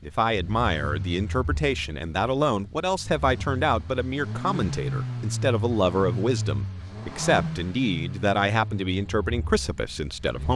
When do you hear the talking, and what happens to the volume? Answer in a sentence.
The talking can be heard from 0.0 to 10.5 s, at a steady volume.